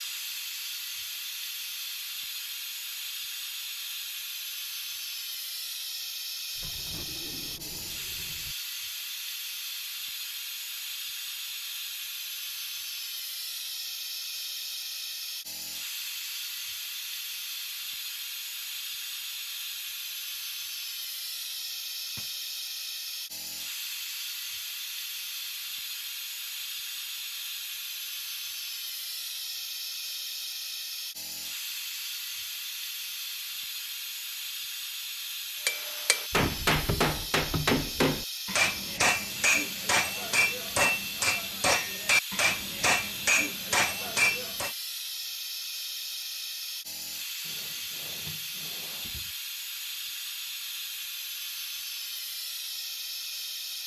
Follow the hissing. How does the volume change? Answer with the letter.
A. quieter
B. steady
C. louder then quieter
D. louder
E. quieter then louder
B.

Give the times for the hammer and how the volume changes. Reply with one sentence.
You can hear the hammer from 35.6 to 44.8 s, at a steady volume.